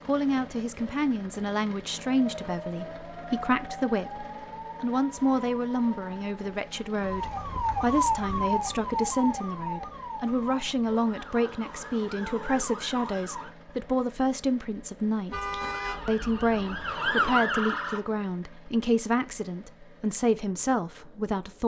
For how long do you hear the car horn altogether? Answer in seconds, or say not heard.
2 s.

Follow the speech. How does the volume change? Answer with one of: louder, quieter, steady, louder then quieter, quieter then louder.
steady.